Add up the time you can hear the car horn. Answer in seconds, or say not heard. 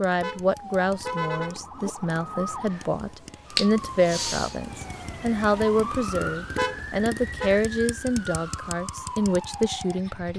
3 s.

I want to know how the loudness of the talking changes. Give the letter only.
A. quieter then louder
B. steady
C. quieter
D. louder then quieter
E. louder
B.